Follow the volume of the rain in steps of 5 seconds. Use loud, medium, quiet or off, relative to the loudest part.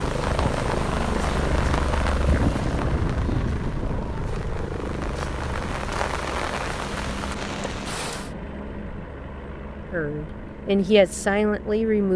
loud, loud, off.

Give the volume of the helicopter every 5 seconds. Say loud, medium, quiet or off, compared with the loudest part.
loud, medium, medium.